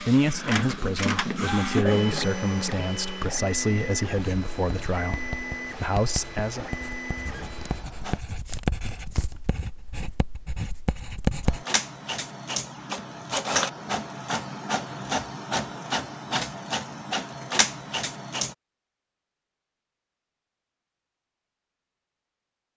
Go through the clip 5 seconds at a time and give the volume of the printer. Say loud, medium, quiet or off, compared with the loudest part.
loud, medium, loud, loud, off.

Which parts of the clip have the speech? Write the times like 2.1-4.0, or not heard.
0.0-6.7.